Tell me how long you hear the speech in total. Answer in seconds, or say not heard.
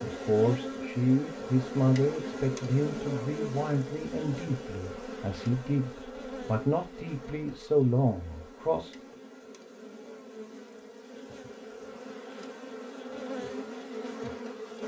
9 s.